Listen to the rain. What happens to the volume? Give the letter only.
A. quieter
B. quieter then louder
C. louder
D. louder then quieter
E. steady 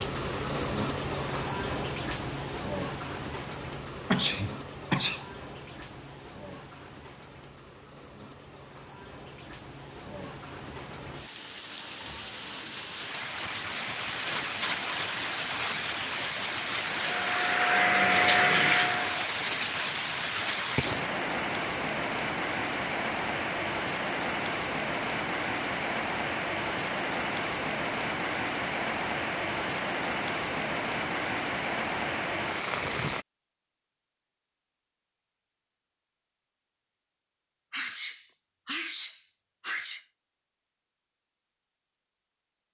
B.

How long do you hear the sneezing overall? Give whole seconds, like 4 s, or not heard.
4 s.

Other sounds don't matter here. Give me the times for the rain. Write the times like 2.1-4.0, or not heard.
0.0-33.2.